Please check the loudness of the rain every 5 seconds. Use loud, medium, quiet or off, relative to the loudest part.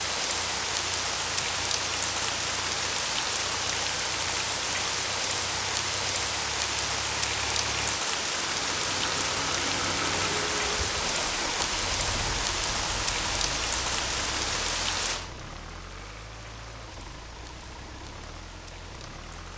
loud, loud, loud, quiet.